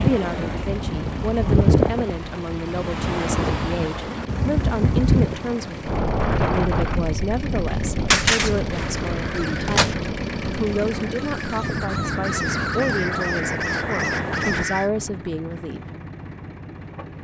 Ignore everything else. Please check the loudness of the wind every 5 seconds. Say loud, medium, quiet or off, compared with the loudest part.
loud, loud, medium, off.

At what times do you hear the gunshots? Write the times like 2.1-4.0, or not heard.
8.1-9.9.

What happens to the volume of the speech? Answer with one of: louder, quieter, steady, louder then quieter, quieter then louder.
steady.